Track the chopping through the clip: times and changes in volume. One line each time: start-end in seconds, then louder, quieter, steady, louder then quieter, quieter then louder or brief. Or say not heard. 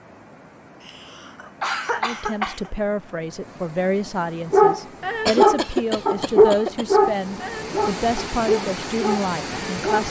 not heard.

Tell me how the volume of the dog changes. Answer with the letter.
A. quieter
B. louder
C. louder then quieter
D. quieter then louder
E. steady
A.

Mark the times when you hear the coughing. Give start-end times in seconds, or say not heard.
0.8-2.7, 5.2-6.8.